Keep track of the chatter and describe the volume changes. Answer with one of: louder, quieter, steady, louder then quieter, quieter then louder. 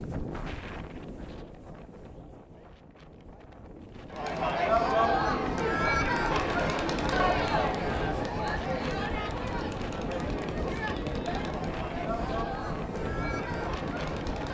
quieter.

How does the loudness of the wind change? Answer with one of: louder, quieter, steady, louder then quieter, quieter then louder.
louder.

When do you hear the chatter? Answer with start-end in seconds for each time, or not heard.
4.1-14.5.